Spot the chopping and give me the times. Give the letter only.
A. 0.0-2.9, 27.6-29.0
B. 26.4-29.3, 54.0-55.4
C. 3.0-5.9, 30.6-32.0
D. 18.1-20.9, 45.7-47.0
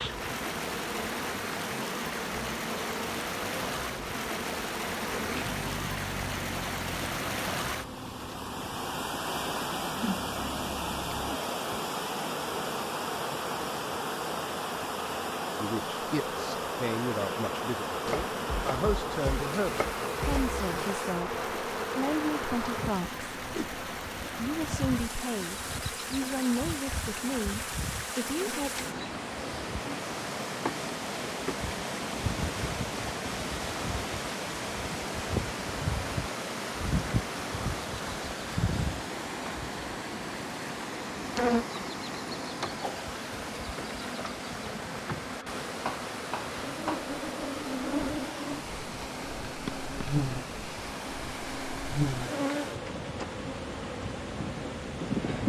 D.